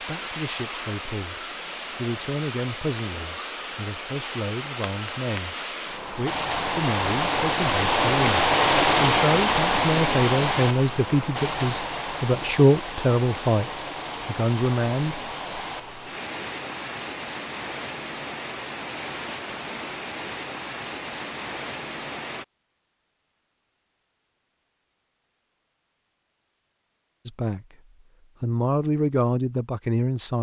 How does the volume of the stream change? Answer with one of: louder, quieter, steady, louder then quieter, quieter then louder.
louder then quieter.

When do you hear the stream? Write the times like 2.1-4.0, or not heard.
0.0-22.4.